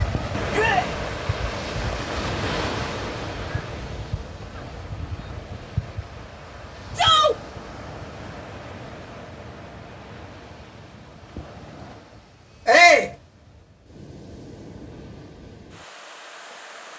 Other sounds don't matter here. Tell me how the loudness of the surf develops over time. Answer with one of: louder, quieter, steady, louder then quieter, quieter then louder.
quieter.